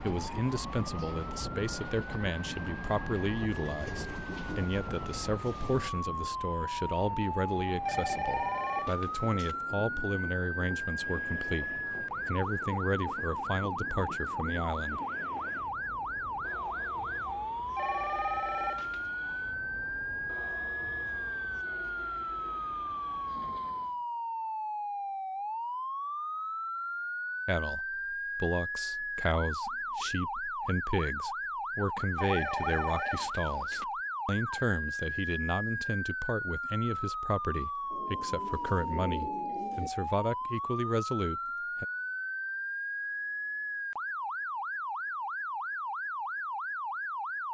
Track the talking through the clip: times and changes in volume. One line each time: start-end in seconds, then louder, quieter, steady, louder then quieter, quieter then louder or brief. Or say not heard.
0.0-15.0 steady
27.4-41.9 steady.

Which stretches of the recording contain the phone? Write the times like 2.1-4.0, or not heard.
7.8-9.6, 17.8-19.0, 32.1-33.9.